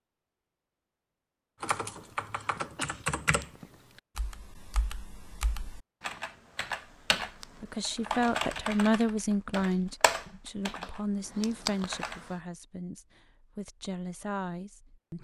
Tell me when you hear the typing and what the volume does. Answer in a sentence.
The typing can be heard from 1.6 to 12.3 s, getting quieter then louder.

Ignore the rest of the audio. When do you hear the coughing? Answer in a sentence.
You can hear the coughing from 2.4 to 3.0 s.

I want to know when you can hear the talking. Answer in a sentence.
You can hear the talking from 7.4 to 15.1 s.